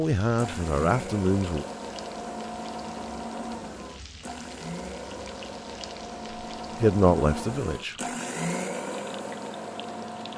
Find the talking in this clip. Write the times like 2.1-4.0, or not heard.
0.0-1.6, 6.8-8.0.